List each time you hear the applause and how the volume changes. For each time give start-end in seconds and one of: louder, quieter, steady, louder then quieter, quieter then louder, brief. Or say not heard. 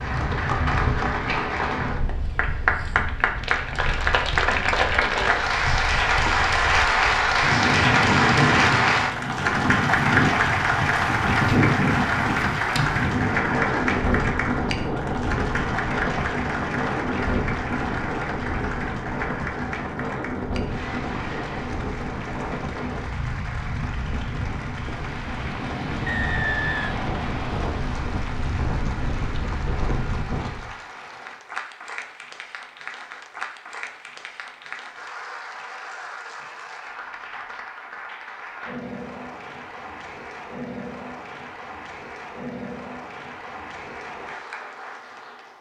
0.0-45.5 quieter.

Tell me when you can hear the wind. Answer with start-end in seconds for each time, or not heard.
0.0-30.7.